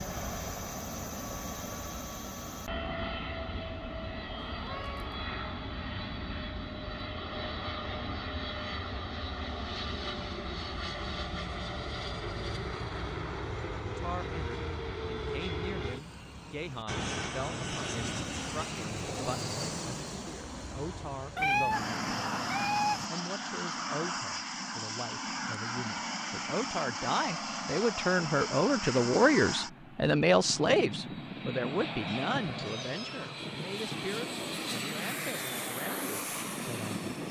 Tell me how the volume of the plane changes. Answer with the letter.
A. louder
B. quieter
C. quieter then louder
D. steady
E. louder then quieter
D.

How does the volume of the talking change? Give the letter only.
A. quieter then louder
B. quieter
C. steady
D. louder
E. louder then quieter
E.